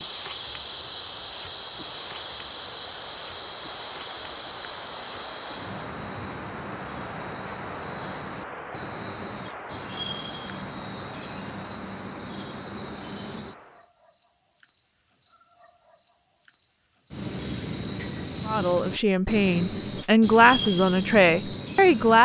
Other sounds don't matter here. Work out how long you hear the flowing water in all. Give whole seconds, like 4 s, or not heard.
14 s.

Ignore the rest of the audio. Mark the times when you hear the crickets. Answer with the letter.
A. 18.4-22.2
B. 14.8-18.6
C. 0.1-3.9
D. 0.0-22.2
D.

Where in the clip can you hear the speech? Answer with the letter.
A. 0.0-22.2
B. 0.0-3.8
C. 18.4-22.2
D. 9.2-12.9
C.